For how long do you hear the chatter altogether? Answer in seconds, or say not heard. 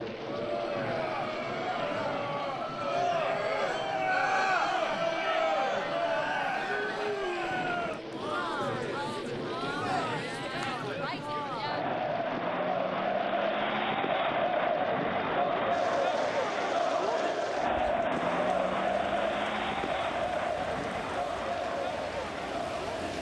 23 s.